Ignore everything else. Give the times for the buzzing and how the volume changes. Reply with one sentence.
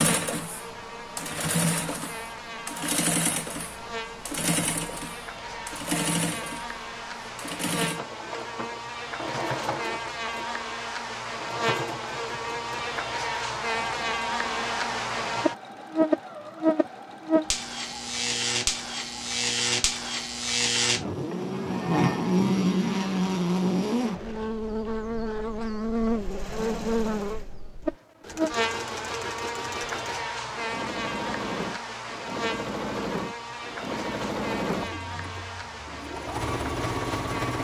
The buzzing can be heard from 0.0 to 37.6 s, getting louder then quieter.